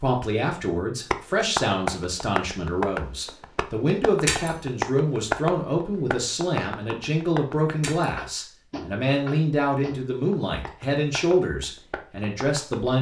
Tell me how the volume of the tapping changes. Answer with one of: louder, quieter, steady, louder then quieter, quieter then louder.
quieter.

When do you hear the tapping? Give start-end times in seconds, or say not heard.
1.1-12.9.